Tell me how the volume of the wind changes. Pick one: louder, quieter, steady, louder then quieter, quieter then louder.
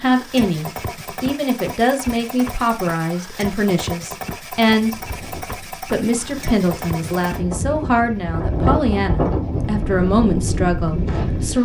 louder.